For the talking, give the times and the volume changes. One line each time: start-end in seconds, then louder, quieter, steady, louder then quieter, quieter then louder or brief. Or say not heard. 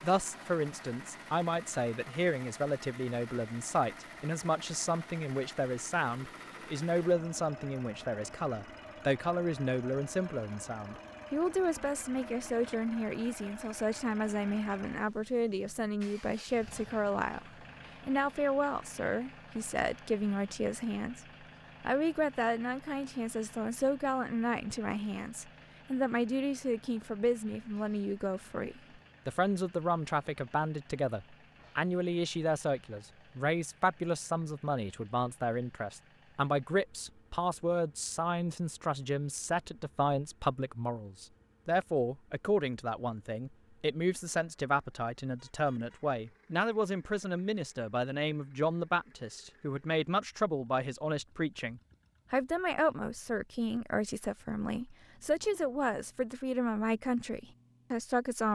0.0-21.2 steady
21.8-58.5 steady.